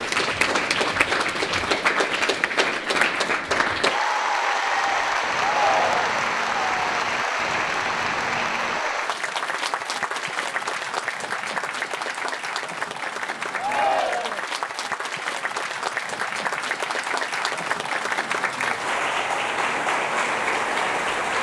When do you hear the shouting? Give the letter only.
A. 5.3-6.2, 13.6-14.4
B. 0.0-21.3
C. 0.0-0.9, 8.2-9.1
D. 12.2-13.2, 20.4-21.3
A.